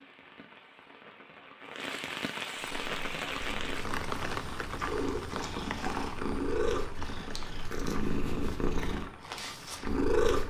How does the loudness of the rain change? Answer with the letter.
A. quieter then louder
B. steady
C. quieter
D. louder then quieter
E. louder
D.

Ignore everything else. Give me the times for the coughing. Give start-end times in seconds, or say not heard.
not heard.